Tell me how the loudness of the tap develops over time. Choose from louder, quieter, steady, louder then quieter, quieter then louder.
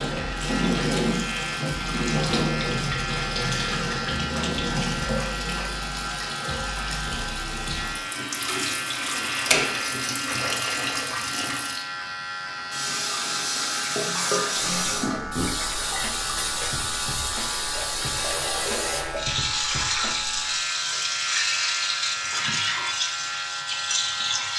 steady.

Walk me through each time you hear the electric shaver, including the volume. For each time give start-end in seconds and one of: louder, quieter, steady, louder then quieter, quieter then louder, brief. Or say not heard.
0.0-24.5 steady.